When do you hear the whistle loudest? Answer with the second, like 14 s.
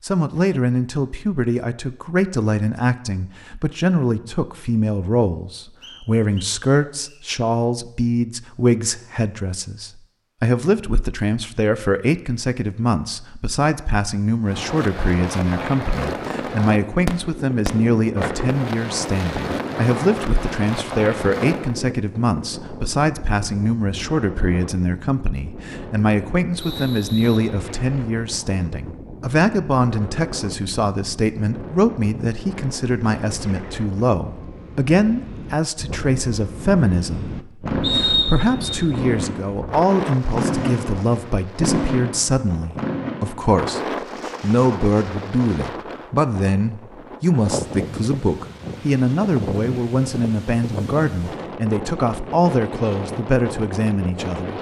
38 s.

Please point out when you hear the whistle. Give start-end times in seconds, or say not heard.
5.8-7.2, 26.6-27.4, 37.8-38.8.